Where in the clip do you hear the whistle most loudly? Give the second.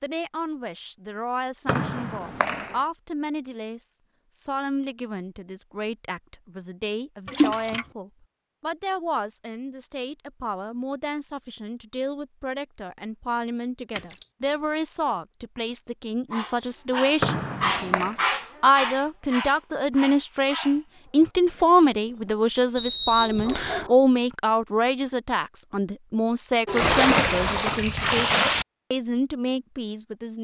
23 s.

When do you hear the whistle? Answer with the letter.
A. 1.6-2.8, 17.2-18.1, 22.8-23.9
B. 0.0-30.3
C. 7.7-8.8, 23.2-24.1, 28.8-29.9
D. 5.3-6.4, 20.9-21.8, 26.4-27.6
A.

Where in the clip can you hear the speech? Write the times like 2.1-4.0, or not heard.
0.0-30.3.